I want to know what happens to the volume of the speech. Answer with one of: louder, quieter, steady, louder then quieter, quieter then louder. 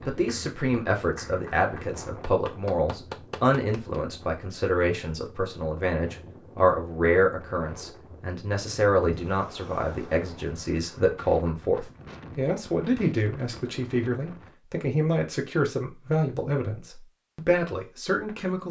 steady.